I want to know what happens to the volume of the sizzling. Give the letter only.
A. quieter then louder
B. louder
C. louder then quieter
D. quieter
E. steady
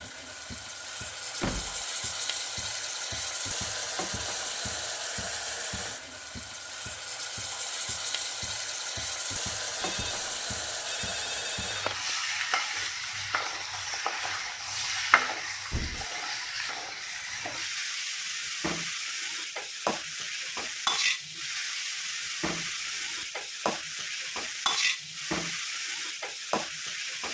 E.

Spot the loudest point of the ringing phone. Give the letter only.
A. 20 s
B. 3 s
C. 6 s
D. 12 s
D.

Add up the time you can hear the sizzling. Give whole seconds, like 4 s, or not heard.
27 s.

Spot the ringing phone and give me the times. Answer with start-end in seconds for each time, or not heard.
9.8-12.2.